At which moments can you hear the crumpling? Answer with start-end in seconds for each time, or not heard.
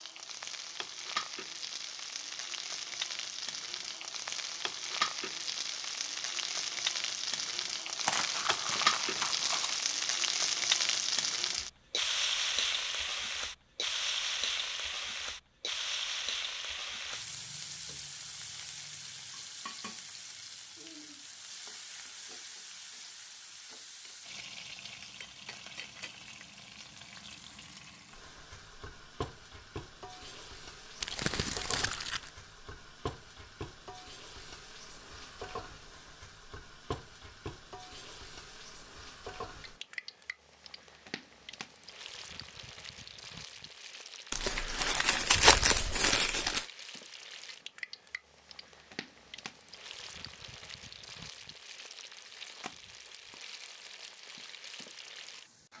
8.1-9.8, 31.0-32.3, 44.3-46.6.